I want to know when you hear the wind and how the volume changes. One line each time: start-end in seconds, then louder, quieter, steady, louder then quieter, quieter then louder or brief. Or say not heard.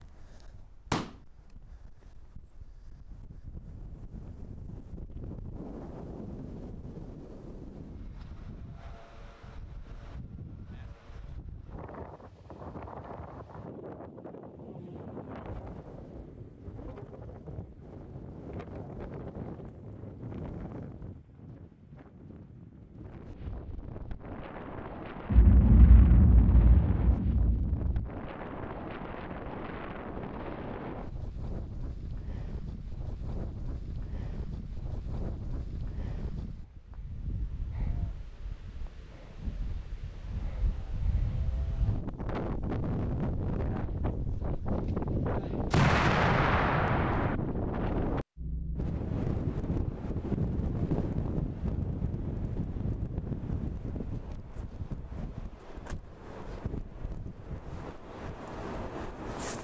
0.0-59.6 louder.